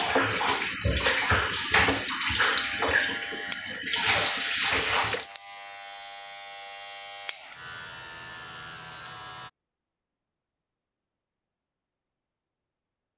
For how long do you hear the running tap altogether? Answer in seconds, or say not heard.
5 s.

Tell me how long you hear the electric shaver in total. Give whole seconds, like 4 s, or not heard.
7 s.